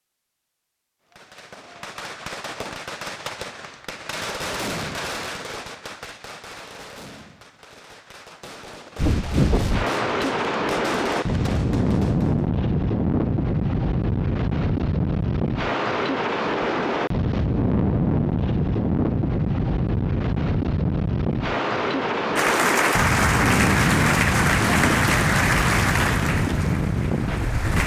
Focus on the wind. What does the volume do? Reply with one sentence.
The loudness of the wind stays about the same.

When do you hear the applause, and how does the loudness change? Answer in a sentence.
You can hear the applause from 22.4 to 27.8 s, getting quieter.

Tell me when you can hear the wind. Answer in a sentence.
You can hear the wind from 8.9 to 27.8 s.